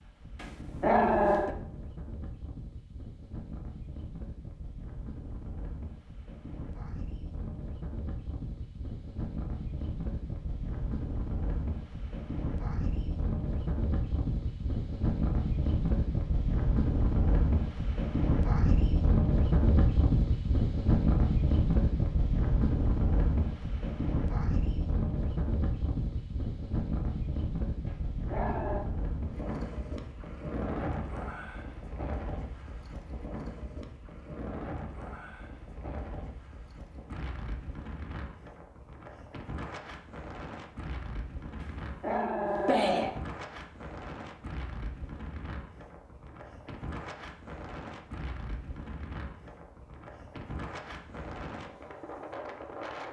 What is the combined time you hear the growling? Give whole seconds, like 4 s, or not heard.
4 s.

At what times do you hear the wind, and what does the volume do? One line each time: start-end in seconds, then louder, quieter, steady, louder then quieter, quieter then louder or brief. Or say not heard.
0.0-53.0 louder then quieter.